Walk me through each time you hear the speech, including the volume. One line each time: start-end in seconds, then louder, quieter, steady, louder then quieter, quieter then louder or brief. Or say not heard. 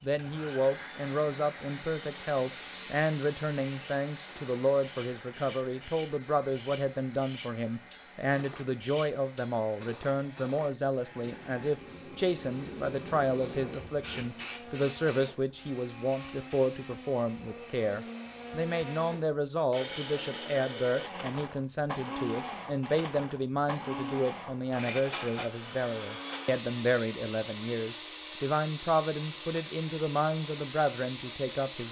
0.0-31.8 steady.